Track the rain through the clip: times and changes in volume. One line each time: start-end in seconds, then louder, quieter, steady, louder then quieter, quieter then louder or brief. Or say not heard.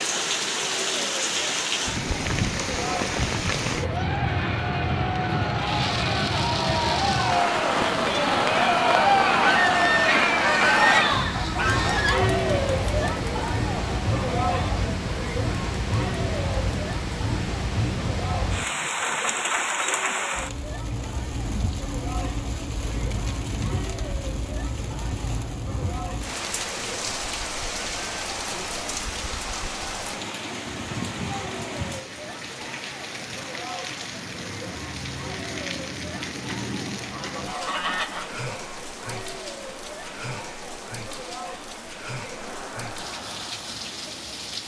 0.0-44.6 quieter.